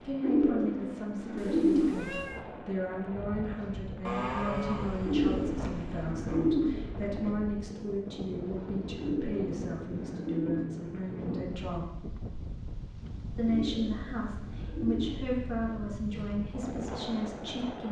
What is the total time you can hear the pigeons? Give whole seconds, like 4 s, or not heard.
9 s.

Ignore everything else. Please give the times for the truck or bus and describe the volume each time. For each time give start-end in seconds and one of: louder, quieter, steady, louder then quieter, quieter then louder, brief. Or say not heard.
not heard.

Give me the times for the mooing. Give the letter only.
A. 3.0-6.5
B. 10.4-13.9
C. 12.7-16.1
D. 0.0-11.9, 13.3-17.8
A.